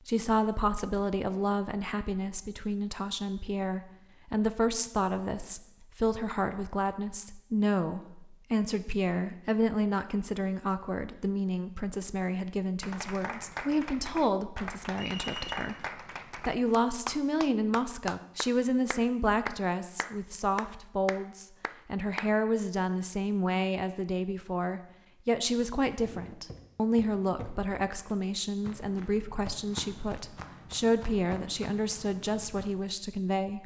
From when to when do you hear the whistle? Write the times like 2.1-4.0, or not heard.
14.9-15.7.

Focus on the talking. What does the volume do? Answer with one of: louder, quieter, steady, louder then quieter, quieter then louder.
steady.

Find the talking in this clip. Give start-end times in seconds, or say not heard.
0.1-33.6.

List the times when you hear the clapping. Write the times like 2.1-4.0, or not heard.
12.8-22.4.